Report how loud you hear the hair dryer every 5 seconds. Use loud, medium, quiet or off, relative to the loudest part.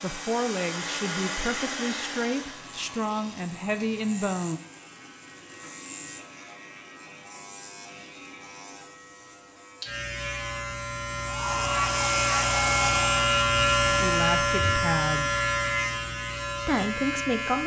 loud, off, loud, off.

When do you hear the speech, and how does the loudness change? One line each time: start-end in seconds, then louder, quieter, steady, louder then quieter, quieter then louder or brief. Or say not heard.
0.0-4.6 steady
13.9-15.4 brief
16.6-17.6 brief.